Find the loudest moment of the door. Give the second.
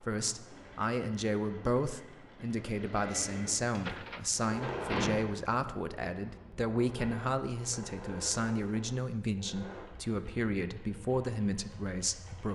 5 s.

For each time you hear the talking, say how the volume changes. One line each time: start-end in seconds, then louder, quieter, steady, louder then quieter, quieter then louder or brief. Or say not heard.
0.0-12.5 steady.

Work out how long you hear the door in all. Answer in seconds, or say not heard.
2 s.